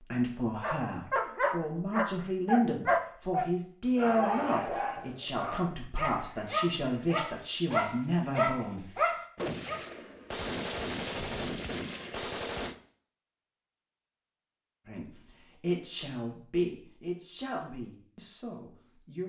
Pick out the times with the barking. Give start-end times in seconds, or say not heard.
0.6-9.8.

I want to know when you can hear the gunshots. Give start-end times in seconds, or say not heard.
9.3-12.8.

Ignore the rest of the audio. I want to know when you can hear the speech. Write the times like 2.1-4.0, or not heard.
0.0-8.9, 14.8-19.2.